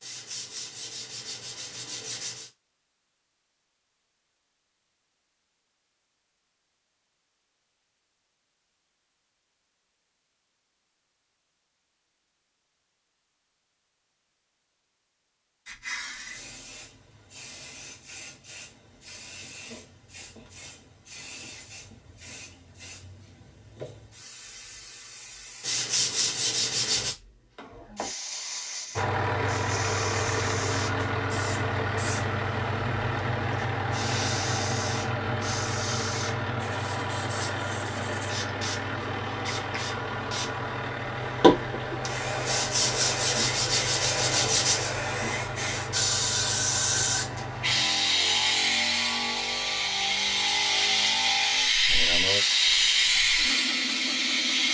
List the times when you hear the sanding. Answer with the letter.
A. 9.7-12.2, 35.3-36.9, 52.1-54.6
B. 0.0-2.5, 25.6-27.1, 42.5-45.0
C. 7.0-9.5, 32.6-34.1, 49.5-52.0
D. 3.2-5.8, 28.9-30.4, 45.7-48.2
B.